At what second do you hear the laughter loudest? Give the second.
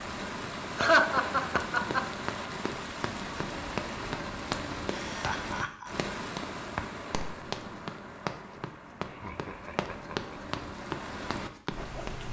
1 s.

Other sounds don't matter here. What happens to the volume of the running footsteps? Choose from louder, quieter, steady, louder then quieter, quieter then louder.
louder.